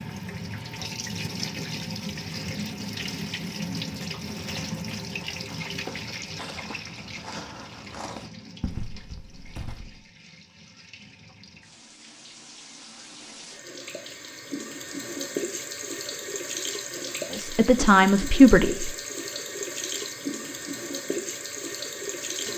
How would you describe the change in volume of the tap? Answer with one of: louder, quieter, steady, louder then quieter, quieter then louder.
quieter then louder.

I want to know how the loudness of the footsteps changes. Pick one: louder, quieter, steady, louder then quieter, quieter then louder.
louder.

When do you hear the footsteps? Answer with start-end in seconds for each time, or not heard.
4.4-9.9.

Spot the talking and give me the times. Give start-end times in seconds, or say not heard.
17.3-18.9.